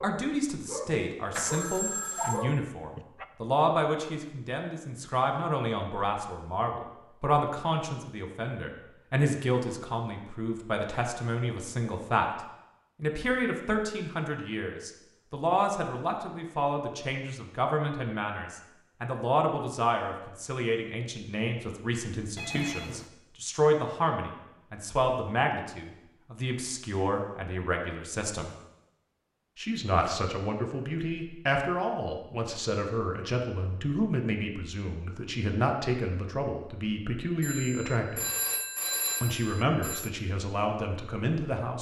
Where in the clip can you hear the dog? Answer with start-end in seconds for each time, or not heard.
0.0-3.2.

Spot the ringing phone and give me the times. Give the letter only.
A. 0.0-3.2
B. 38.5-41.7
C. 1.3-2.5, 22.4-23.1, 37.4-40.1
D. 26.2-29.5
C.